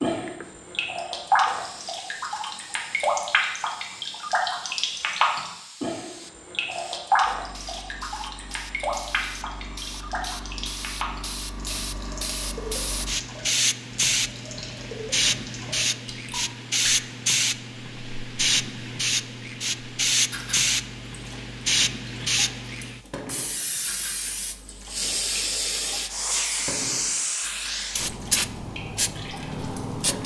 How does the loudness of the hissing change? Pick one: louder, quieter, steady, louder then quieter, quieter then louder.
louder.